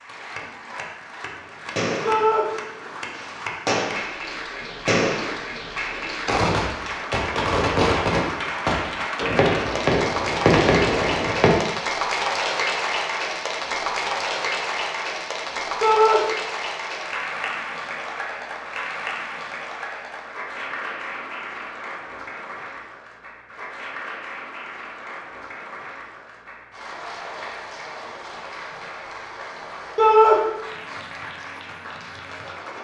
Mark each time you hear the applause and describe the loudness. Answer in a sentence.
You can hear the applause from 0.0 to 32.7 s, getting louder then quieter.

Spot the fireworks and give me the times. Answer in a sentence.
The fireworks can be heard from 1.4 to 11.6 s.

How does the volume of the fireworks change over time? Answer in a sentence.
The volume of the fireworks goes up.